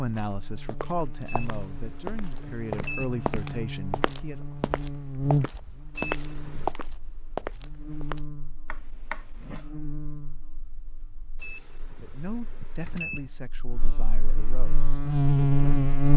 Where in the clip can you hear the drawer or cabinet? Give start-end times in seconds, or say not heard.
8.7-9.7.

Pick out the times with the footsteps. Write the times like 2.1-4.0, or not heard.
0.1-8.2.